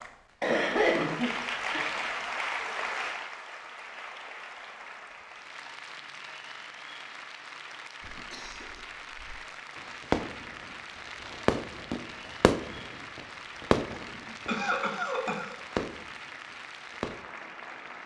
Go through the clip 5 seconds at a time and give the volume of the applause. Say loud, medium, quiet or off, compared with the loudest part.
loud, medium, medium, medium.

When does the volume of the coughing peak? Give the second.
1 s.